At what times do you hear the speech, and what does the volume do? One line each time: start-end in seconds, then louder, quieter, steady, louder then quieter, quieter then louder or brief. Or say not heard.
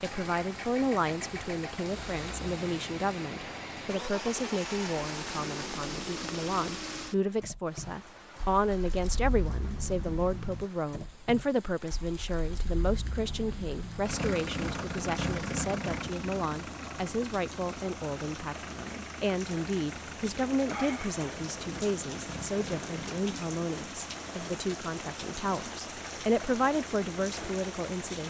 0.0-28.2 steady.